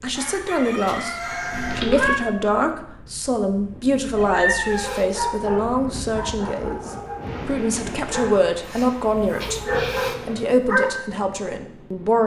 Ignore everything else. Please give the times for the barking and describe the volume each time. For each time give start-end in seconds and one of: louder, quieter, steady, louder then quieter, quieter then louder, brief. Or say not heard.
4.6-10.9 quieter then louder.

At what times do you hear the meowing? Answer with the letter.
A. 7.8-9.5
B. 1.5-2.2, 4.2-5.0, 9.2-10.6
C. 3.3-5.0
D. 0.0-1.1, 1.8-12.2
B.